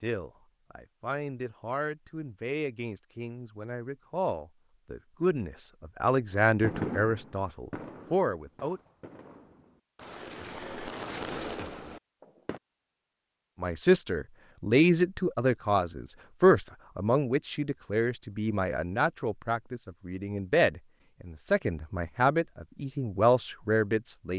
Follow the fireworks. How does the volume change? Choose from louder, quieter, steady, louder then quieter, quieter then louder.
quieter then louder.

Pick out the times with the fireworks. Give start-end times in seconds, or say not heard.
6.3-12.6.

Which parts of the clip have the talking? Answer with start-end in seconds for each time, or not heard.
0.0-8.8, 13.6-24.3.